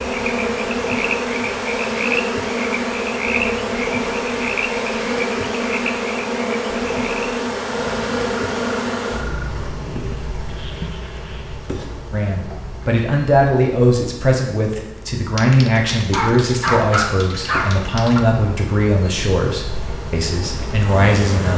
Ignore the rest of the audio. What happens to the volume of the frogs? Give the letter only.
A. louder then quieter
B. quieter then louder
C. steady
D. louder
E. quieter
E.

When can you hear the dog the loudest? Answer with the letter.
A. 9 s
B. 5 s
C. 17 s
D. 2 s
C.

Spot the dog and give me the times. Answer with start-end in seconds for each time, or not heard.
15.3-18.2.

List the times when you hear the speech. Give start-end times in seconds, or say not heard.
12.1-21.5.